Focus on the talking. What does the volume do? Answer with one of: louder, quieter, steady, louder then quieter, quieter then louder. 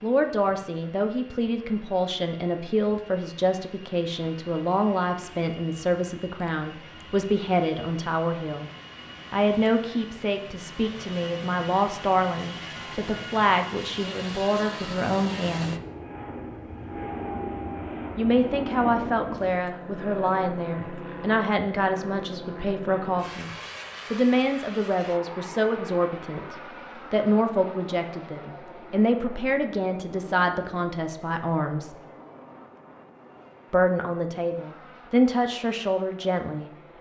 steady.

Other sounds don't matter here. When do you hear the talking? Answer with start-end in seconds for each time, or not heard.
0.0-8.7, 9.3-15.8, 18.1-31.9, 33.7-36.7.